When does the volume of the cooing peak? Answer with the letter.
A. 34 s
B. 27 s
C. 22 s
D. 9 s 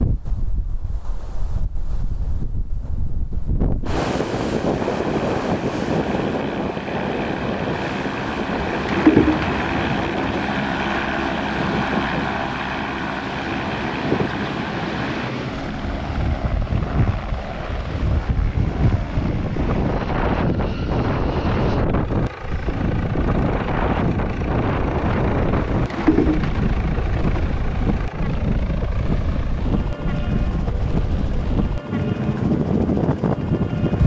D.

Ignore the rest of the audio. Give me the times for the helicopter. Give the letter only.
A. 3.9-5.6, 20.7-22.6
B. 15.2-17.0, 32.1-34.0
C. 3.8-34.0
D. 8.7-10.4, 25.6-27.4
C.